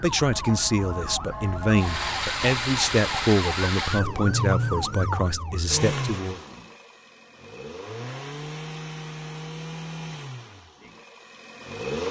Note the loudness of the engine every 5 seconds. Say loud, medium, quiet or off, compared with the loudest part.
loud, medium, medium.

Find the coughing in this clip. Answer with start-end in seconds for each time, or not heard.
not heard.